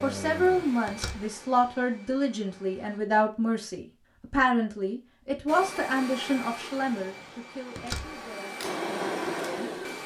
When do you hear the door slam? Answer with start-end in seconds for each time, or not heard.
0.8-1.4, 7.8-8.2.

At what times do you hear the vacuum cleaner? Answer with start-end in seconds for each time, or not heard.
0.0-3.0, 5.5-10.0.